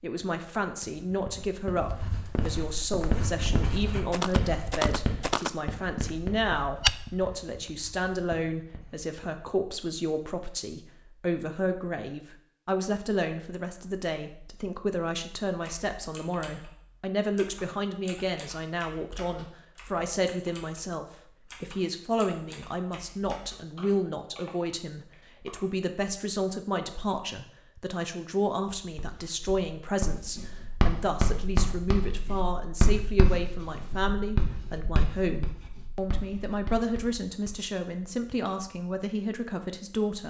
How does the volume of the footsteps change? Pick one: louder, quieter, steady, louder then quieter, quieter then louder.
louder.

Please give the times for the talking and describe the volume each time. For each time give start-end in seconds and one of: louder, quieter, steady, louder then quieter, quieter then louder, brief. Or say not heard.
0.0-40.2 steady.